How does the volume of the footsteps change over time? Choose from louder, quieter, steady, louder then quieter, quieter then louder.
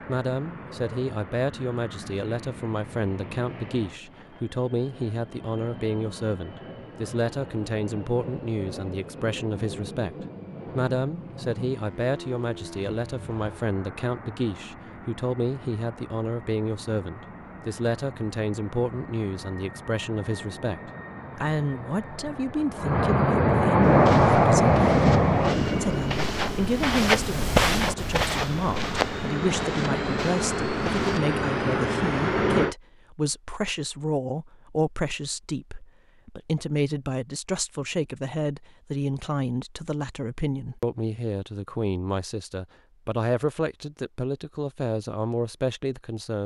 louder then quieter.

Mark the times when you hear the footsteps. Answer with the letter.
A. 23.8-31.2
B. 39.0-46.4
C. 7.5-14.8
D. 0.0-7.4
A.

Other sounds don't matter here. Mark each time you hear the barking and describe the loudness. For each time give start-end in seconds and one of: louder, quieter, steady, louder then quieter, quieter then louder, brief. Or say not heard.
not heard.